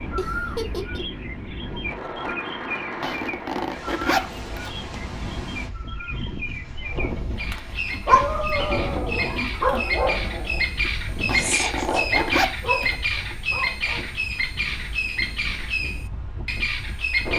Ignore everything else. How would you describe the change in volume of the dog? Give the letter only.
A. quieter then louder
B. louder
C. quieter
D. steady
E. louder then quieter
C.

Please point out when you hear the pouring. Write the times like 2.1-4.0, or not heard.
not heard.